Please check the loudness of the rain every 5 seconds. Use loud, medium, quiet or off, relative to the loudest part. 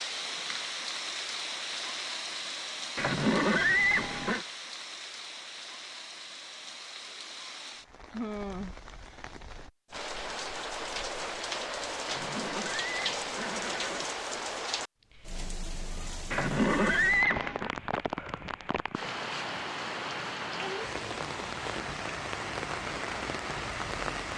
loud, medium, loud, loud, loud.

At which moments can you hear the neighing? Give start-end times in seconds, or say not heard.
3.0-4.5, 12.1-14.1, 16.3-17.7.